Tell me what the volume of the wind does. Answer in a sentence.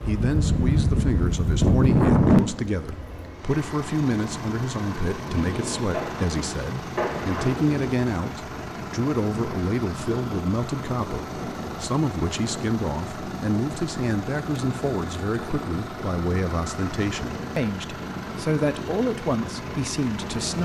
The loudness of the wind goes down.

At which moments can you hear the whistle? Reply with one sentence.
The whistle can't be heard in this clip.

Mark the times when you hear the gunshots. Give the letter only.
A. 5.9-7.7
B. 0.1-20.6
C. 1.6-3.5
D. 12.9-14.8
A.